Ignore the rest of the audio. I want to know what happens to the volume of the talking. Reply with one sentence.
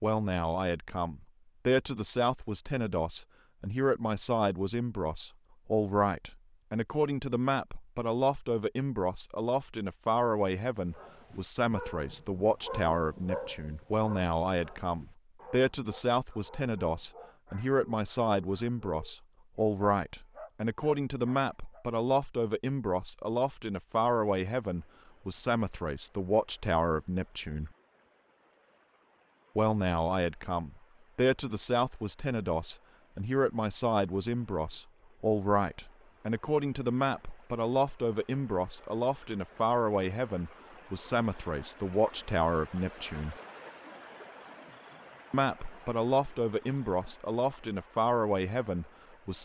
The loudness of the talking stays about the same.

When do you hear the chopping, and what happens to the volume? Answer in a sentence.
The chopping can't be heard in this clip.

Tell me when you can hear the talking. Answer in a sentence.
You can hear the talking from 0.0 to 27.7 s, from 29.6 to 43.4 s and from 45.3 to 49.4 s.